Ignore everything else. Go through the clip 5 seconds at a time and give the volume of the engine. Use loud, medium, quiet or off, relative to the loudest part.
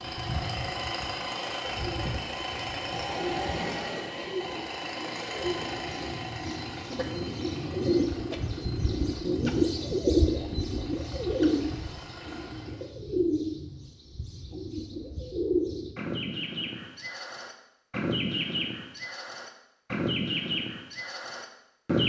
loud, medium, quiet, off, off.